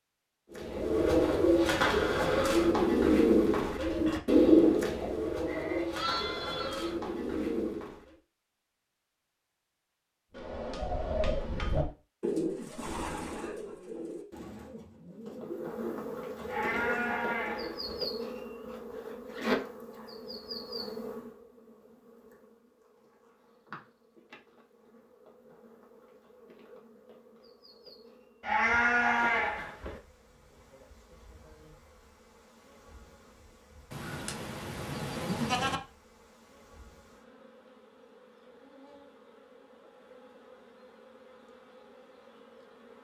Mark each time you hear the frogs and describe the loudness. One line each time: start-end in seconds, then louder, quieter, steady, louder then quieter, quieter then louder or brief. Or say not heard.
not heard.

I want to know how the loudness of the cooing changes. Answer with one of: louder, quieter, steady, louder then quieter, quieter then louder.
quieter.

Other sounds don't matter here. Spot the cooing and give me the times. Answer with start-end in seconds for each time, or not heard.
0.6-8.0, 10.3-17.9.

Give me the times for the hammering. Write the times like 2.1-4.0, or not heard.
10.3-11.9.